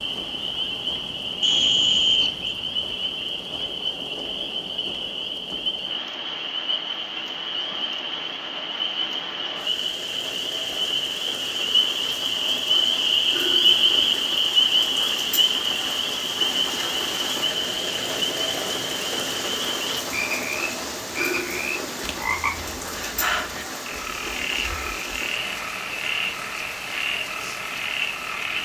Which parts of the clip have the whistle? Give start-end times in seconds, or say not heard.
1.4-2.5.